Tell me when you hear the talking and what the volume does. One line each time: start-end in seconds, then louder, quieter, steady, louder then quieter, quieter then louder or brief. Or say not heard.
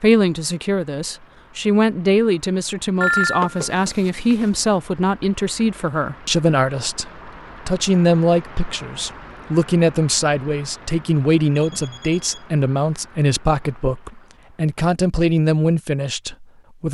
0.0-16.8 steady.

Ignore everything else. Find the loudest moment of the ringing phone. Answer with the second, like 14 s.
3 s.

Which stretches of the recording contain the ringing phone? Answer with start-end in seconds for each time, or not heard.
3.0-4.5, 11.6-12.6.